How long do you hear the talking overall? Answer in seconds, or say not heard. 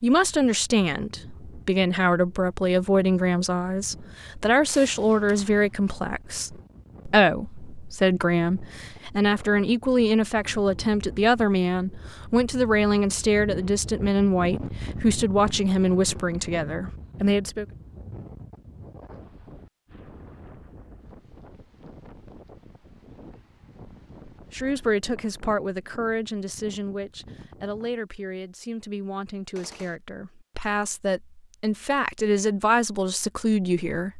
27 s.